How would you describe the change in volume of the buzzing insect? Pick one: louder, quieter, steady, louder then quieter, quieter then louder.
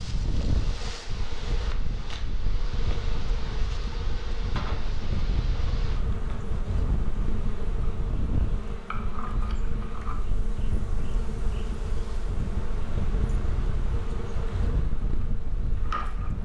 steady.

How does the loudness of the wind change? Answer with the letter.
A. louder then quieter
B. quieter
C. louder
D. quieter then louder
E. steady
E.